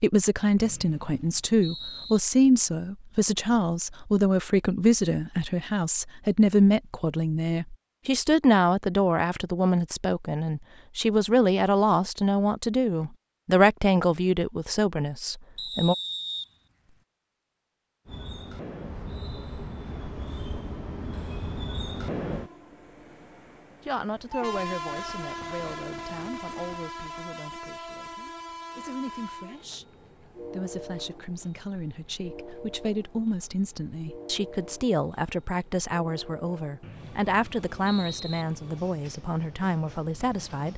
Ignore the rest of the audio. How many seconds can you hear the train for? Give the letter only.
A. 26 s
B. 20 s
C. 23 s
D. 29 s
C.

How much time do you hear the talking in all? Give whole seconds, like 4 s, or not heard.
33 s.